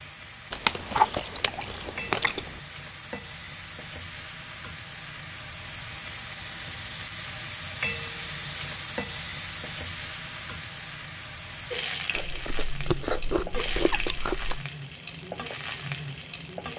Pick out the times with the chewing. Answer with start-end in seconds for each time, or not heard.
0.5-2.6, 12.1-14.6.